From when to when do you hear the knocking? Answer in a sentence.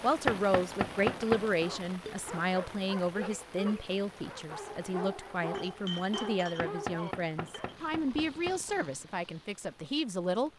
The knocking can be heard from 0.2 to 1.6 s and from 6.5 to 8.6 s.